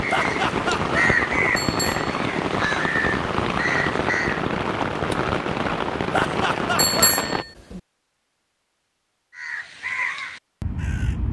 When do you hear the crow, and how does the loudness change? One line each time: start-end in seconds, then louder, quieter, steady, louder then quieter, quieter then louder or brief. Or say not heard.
0.0-4.4 quieter then louder
9.3-11.2 brief.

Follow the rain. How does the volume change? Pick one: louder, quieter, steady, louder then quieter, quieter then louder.
steady.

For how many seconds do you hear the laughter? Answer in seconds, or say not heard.
2 s.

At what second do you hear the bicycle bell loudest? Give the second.
7 s.